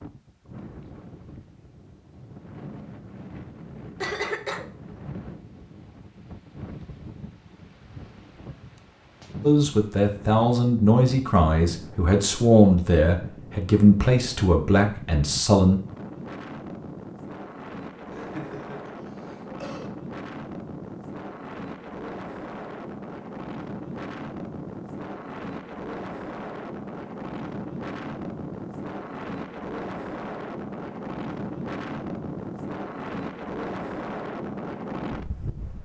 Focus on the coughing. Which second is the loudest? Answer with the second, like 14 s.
4 s.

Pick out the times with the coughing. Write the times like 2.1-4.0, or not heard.
4.0-4.7, 18.1-19.9.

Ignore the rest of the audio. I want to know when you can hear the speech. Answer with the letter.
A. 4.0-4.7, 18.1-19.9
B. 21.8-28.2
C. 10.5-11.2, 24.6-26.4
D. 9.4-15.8
D.